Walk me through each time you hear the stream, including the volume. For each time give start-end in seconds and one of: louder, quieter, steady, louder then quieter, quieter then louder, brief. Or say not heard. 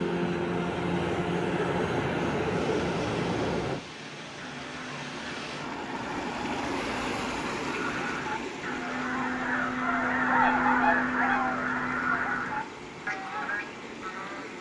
2.5-14.5 louder then quieter.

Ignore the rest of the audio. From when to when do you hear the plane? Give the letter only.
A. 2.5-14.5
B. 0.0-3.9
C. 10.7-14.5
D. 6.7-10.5
B.